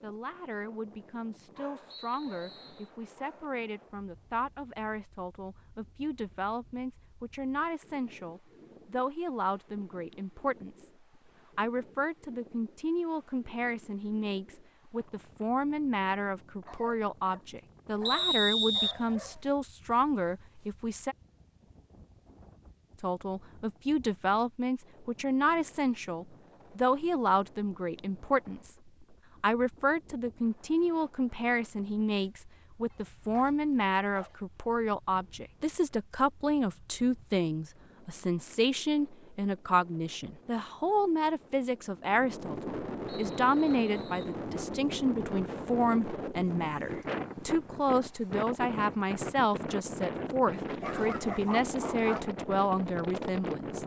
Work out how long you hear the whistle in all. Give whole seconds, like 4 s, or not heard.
4 s.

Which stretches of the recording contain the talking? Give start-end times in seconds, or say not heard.
0.0-10.9, 11.6-21.1, 23.0-28.8, 29.4-53.8.